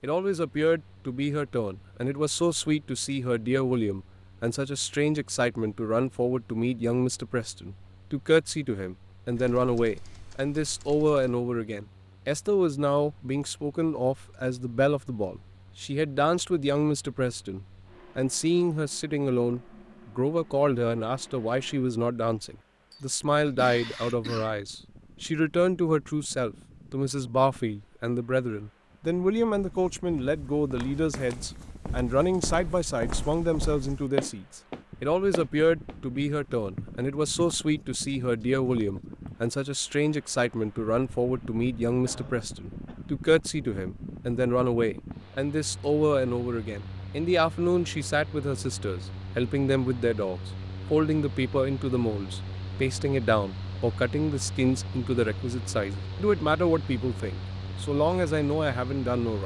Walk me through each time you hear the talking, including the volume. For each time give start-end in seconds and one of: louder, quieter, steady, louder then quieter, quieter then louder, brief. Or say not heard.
0.0-59.4 steady.